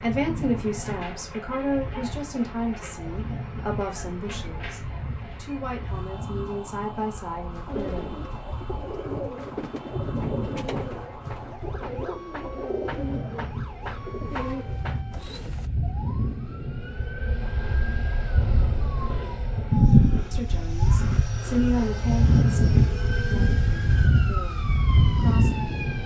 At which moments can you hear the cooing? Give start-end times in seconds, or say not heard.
7.7-15.7.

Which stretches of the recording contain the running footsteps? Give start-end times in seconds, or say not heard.
not heard.